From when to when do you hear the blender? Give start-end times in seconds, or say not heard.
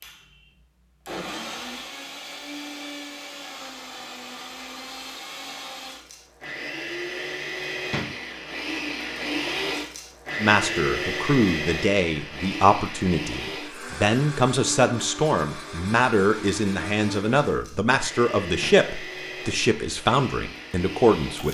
0.0-21.5.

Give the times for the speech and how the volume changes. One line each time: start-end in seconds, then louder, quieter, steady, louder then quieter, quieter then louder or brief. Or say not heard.
10.4-21.5 steady.